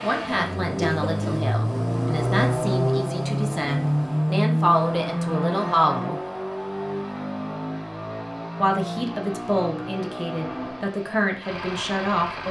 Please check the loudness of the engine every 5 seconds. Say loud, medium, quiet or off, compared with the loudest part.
loud, medium, medium.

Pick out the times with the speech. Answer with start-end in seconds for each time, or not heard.
0.0-6.2, 8.6-12.4.